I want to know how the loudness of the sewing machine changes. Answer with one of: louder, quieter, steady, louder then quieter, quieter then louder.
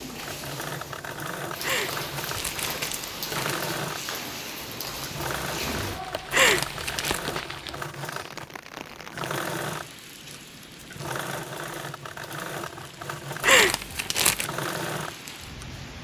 steady.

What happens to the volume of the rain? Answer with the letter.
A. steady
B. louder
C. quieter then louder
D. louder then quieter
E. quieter
E.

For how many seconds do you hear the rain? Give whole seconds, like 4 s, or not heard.
16 s.